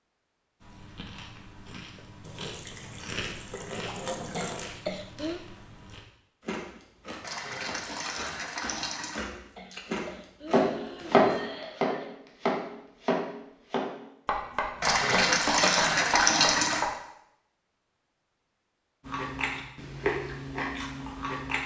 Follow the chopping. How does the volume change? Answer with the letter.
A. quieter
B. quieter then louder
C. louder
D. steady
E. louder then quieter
A.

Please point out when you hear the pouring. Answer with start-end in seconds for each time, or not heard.
2.2-4.8, 7.2-9.2, 14.8-16.9.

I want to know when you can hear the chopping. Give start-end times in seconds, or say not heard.
10.5-16.9.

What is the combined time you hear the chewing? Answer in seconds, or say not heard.
13 s.